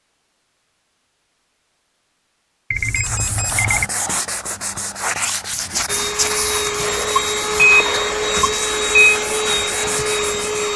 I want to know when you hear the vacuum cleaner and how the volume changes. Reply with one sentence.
You can hear the vacuum cleaner from 5.8 to 10.7 s, at a steady volume.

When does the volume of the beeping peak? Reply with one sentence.
The loudest moment of the beeping is at 8 seconds.